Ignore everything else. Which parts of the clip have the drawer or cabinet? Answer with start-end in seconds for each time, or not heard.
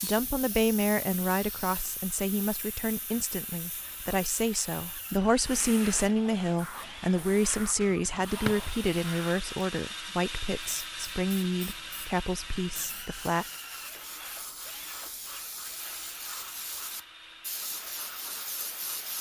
7.9-8.7.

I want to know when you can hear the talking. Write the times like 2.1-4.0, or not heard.
0.0-13.4.